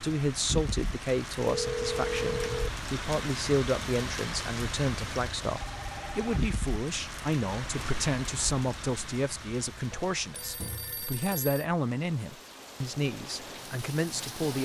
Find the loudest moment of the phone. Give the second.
2 s.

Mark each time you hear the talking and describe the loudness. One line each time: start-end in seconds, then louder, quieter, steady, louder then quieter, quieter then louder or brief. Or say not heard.
0.0-14.5 steady.